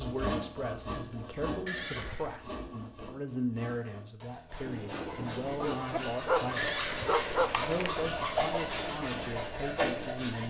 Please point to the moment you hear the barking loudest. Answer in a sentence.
The volume of the barking peaks at 7 seconds.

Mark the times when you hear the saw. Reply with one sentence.
The saw can be heard from 0.0 to 10.4 s.